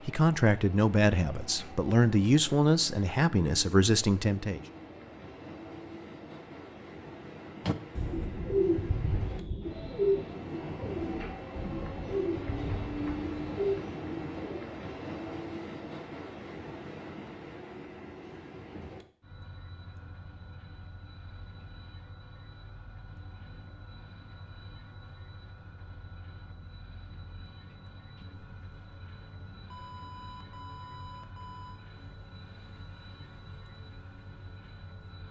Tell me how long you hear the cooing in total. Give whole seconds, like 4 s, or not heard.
7 s.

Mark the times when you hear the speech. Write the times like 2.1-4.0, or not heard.
0.1-4.6.